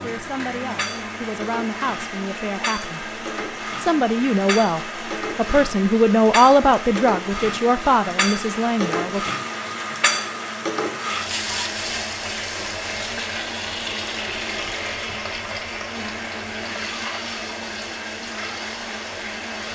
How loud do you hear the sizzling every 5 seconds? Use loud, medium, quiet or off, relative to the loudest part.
medium, loud, loud, medium.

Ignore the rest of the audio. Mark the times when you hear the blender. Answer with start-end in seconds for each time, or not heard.
0.0-19.7.